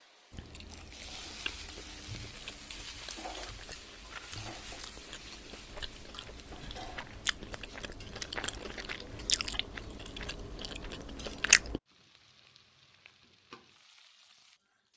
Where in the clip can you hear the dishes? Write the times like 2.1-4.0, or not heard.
not heard.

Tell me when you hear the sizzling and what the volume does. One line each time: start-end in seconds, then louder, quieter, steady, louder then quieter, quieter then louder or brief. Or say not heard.
0.0-14.9 quieter.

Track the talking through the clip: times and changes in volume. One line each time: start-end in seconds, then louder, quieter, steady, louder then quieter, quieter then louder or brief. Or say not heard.
not heard.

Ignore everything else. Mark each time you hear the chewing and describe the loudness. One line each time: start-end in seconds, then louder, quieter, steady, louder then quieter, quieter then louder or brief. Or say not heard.
0.3-11.8 louder.